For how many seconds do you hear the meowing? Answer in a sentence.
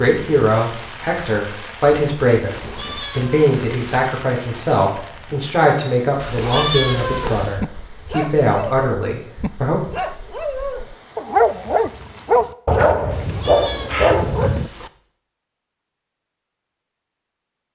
You can hear the meowing for 5 seconds altogether.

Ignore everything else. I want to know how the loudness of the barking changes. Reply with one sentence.
The volume of the barking goes up.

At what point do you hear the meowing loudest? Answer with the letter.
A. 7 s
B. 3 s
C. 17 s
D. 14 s
A.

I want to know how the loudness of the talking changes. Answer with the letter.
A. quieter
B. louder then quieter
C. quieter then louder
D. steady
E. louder
D.